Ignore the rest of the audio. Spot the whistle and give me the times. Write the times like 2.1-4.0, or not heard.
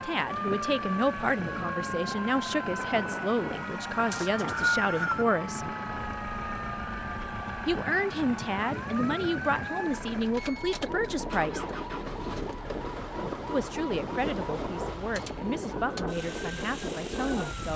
4.1-5.2.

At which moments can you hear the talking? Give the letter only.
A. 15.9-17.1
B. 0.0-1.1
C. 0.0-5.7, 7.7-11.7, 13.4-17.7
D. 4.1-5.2
C.